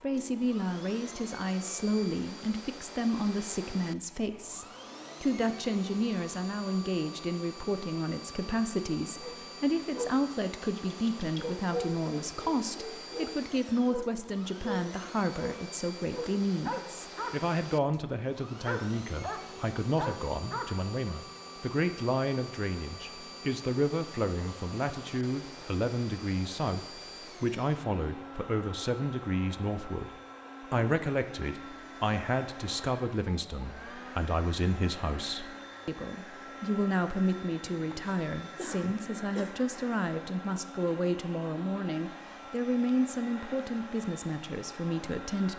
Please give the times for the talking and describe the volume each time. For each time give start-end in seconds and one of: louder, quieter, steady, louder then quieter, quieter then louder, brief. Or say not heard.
0.0-30.1 steady
30.7-45.5 steady.